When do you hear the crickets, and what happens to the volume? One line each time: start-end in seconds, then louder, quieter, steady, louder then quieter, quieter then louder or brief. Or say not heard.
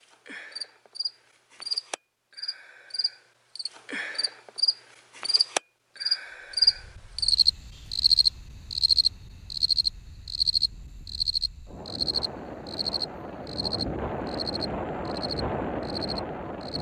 0.0-16.7 louder then quieter.